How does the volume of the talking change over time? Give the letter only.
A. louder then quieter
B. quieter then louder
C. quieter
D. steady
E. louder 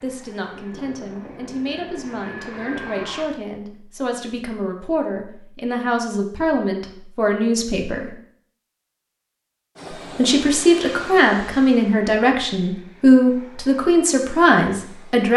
E.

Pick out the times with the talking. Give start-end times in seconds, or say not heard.
0.0-8.2, 10.2-15.3.